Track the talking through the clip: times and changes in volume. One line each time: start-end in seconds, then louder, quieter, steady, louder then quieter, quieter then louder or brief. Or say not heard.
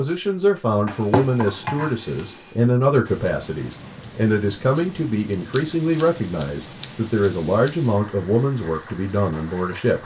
0.0-9.9 steady.